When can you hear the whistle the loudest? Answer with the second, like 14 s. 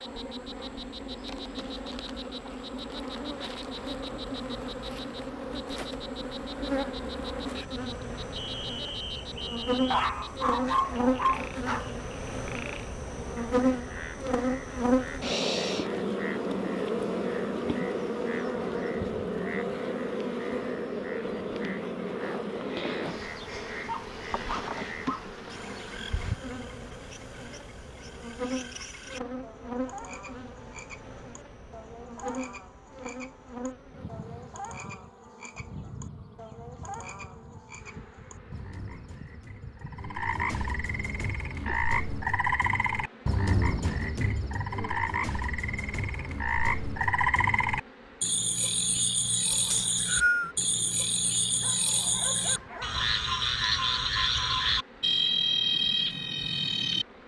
50 s.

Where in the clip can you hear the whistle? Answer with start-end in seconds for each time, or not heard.
8.3-9.9, 49.7-50.5.